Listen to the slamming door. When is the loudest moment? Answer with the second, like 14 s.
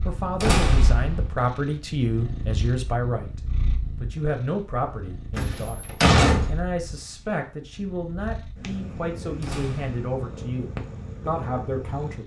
6 s.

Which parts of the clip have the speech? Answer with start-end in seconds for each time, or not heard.
0.1-12.2.